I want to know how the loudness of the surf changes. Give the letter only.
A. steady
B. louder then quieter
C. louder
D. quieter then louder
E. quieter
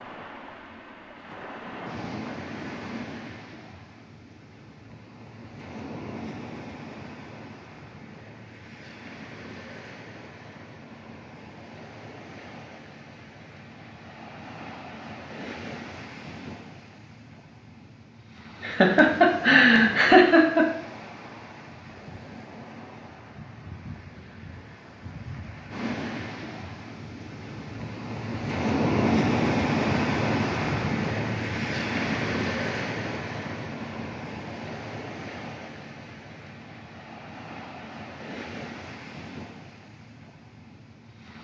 B.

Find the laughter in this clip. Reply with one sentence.
The laughter can be heard from 18.6 to 20.6 s.